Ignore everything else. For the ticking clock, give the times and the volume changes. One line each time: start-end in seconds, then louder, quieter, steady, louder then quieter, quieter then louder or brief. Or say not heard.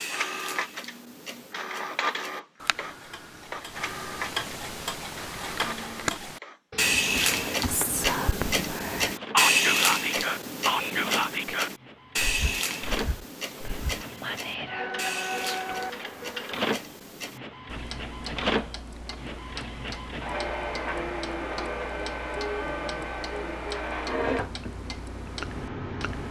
0.0-26.2 louder then quieter.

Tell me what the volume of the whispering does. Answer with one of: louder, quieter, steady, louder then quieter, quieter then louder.
quieter then louder.